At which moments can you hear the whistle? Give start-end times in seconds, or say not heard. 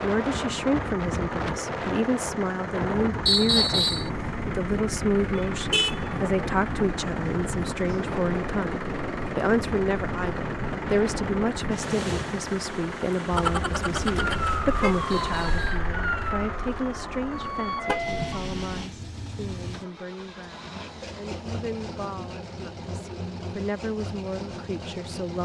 3.2-4.1, 15.1-15.8.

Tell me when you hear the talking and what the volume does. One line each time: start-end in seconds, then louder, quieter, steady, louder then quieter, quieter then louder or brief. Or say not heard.
0.0-25.3 quieter.